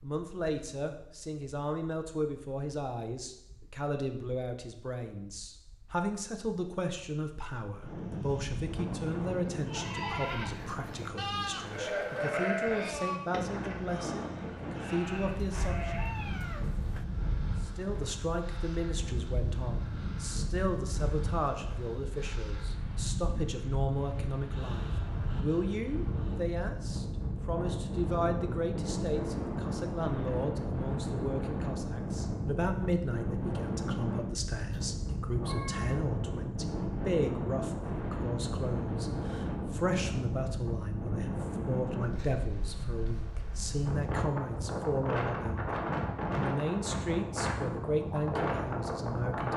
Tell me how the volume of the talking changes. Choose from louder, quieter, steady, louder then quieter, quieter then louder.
steady.